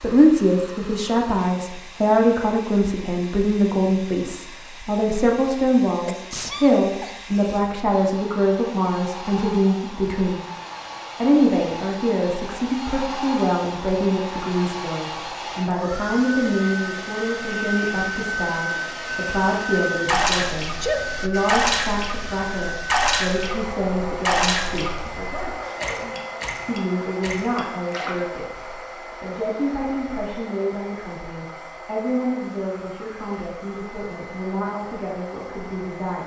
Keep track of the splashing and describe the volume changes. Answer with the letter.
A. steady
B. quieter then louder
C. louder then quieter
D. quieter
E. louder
D.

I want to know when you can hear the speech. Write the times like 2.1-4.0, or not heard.
0.0-10.4, 11.2-25.1, 26.6-36.2.